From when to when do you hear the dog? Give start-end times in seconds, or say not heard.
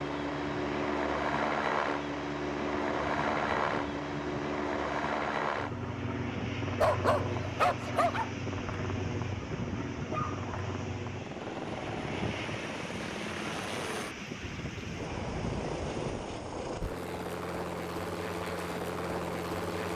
6.8-8.3, 10.1-10.8.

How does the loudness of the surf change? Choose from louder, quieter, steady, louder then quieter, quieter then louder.
louder.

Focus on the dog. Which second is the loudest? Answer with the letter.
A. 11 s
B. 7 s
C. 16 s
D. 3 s
B.